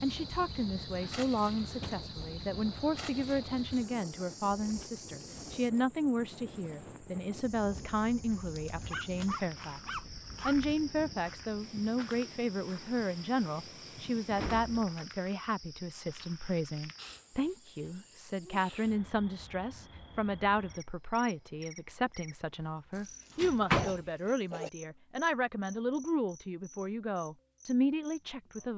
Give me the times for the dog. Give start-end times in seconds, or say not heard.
8.9-10.6, 22.9-24.7.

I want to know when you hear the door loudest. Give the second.
24 s.